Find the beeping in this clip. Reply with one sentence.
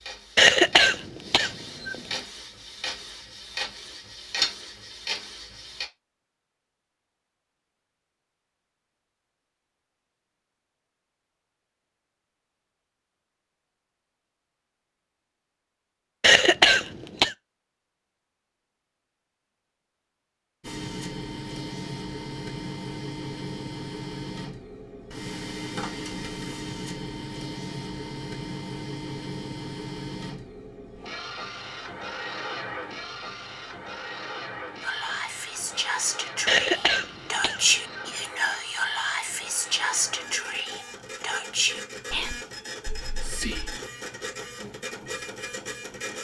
The beeping can't be heard in this clip.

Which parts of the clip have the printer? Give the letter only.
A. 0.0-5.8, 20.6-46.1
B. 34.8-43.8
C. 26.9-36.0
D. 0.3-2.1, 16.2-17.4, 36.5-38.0
A.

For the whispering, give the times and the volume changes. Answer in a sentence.
You can hear the whispering from 34.8 to 43.8 s, getting louder then quieter.